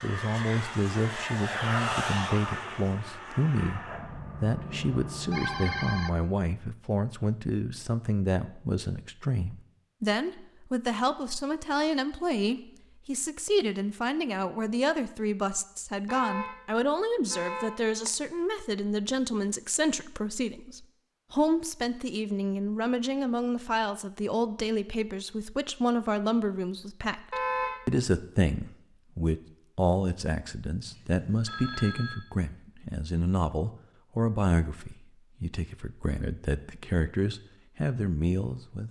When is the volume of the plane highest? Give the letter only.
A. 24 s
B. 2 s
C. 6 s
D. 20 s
B.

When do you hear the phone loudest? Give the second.
6 s.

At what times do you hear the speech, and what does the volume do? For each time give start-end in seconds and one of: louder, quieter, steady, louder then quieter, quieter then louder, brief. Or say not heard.
0.0-38.8 steady.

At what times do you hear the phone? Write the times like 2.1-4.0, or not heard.
5.3-6.1, 30.9-32.1.